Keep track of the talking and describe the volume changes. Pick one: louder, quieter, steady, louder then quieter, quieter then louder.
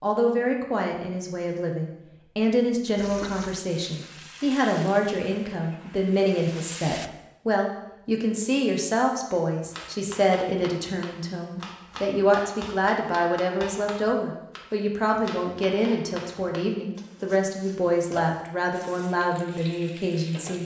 steady.